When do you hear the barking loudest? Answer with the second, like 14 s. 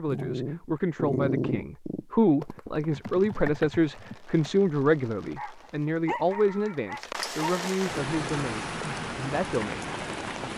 1 s.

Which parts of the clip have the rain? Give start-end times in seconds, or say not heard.
3.0-10.5.